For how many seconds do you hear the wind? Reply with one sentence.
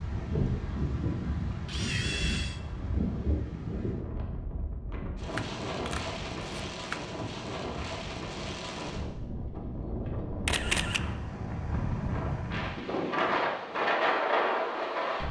The wind can be heard for 15 seconds in total.